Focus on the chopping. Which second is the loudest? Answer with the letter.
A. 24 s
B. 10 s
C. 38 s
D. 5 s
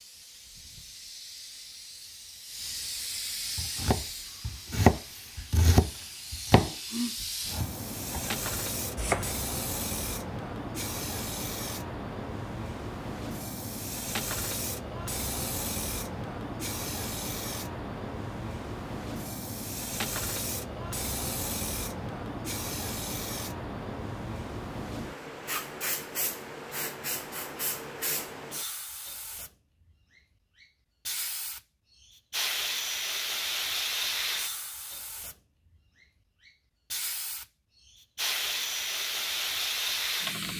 D.